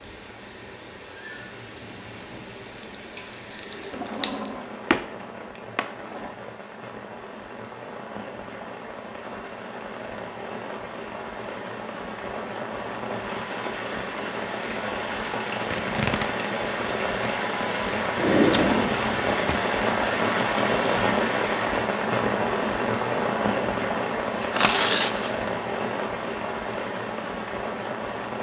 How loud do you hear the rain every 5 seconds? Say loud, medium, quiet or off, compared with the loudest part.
quiet, quiet, medium, loud, loud, medium.